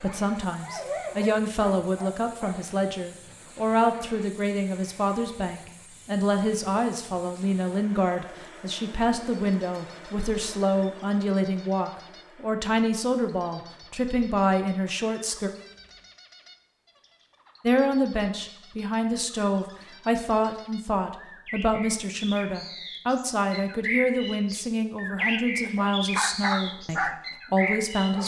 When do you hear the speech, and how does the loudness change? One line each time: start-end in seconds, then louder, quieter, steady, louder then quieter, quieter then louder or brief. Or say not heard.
0.0-15.5 steady
17.6-28.2 steady.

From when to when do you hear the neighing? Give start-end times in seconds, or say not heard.
not heard.